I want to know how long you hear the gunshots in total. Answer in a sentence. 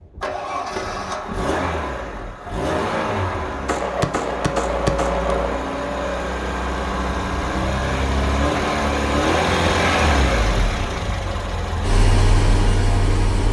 You can hear the gunshots for 2 seconds altogether.